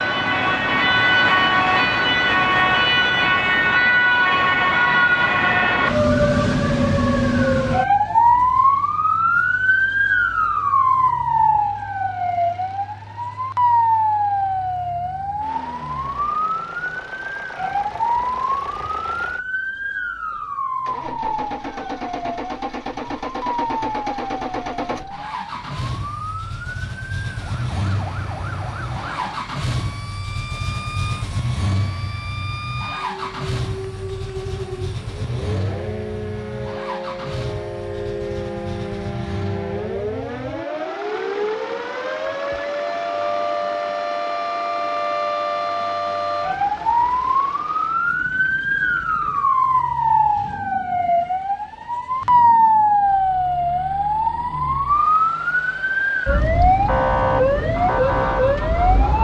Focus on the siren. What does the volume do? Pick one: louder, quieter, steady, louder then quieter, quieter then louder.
quieter then louder.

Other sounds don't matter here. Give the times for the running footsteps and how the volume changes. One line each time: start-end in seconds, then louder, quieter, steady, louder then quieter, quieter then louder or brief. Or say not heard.
not heard.